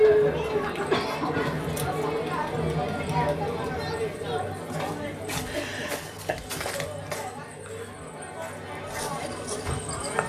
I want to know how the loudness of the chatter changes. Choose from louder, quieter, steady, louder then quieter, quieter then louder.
quieter.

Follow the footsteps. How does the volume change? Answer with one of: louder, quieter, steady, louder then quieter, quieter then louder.
quieter then louder.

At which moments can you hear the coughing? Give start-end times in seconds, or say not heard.
0.9-1.6, 5.3-6.4.